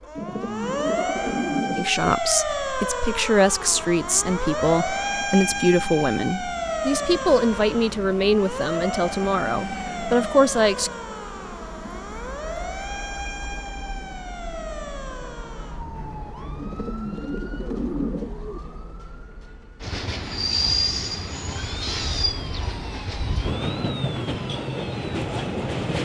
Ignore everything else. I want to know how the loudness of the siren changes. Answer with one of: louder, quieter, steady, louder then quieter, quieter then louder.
quieter.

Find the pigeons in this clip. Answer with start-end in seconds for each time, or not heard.
0.1-2.1, 16.6-18.6.